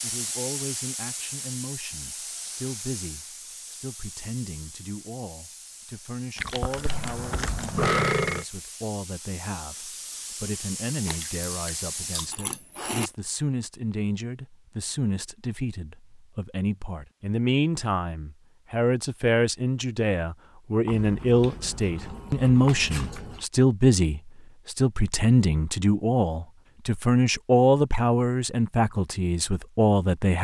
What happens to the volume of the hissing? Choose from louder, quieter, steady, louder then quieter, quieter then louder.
quieter then louder.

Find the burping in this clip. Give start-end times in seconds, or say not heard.
6.8-8.4.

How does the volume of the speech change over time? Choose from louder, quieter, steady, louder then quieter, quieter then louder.
louder.